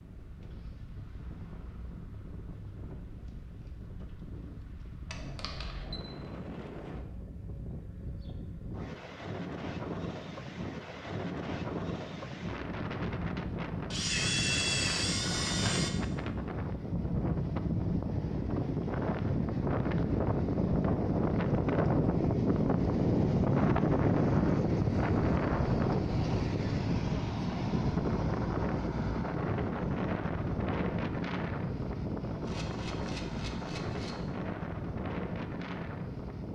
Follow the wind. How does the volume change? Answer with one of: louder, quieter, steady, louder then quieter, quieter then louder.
louder then quieter.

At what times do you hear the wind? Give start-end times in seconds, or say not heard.
0.0-36.5.